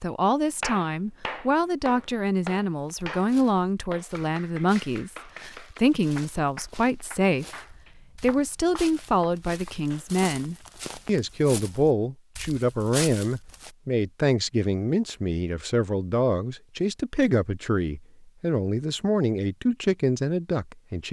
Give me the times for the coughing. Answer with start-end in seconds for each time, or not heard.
not heard.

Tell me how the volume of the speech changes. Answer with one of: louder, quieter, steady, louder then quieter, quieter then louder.
steady.